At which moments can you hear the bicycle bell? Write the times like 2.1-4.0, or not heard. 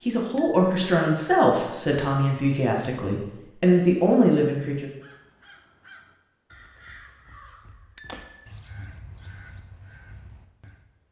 0.3-0.8, 8.0-8.5.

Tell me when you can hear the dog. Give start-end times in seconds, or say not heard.
not heard.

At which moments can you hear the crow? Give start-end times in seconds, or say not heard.
4.9-10.9.